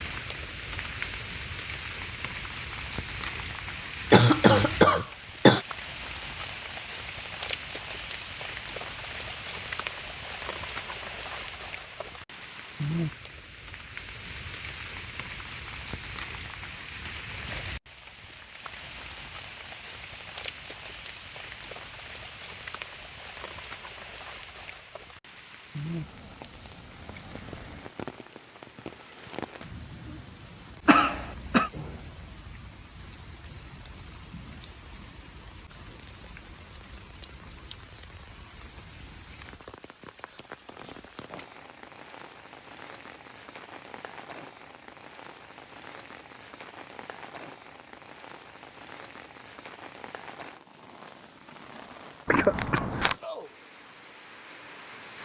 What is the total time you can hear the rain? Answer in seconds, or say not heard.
55 s.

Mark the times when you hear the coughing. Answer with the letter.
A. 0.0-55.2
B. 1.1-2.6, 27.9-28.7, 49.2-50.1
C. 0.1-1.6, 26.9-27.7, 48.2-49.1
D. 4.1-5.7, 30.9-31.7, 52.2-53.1
D.